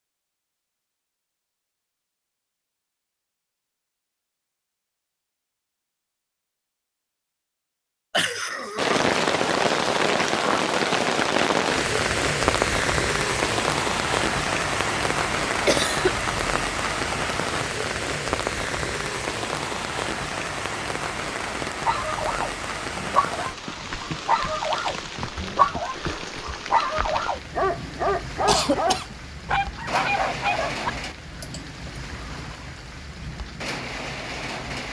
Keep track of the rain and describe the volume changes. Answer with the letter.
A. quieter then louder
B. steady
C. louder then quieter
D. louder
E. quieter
E.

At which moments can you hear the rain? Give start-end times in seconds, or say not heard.
8.8-34.8.